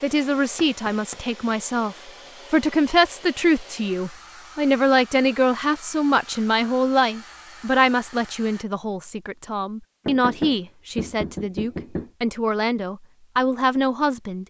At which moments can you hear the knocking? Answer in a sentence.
You can hear the knocking from 0.6 to 1.2 s and from 10.1 to 12.1 s.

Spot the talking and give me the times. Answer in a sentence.
The talking can be heard from 0.0 to 14.4 s.